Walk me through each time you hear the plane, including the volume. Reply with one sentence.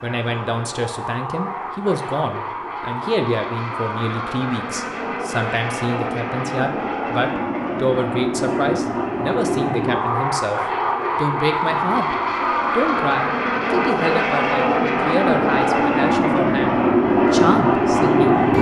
You can hear the plane from 0.0 to 18.5 s, getting louder.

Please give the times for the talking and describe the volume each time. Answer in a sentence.
The talking can be heard from 0.0 to 18.4 s, at a steady volume.